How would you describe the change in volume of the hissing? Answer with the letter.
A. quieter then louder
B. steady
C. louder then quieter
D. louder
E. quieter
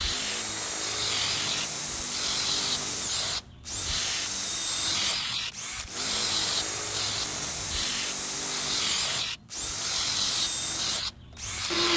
B.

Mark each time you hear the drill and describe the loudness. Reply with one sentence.
The drill can be heard from 0.0 to 11.9 s, at a steady volume.